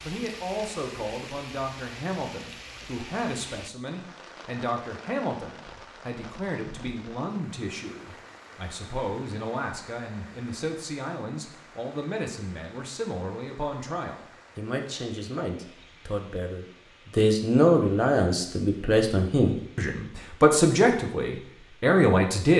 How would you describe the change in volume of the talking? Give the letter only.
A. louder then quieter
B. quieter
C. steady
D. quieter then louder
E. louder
E.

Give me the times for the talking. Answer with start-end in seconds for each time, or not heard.
0.0-22.5.